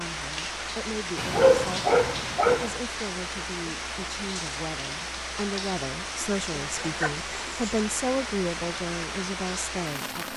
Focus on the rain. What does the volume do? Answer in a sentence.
The volume of the rain stays about the same.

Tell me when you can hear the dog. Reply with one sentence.
You can hear the dog from 1.1 to 2.8 s and from 6.2 to 7.8 s.